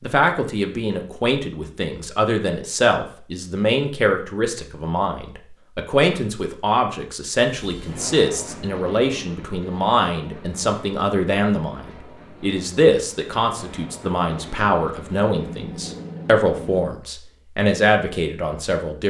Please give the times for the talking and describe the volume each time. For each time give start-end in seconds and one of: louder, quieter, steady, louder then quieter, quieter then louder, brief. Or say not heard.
0.0-19.0 steady.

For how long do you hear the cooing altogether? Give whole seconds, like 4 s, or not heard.
not heard.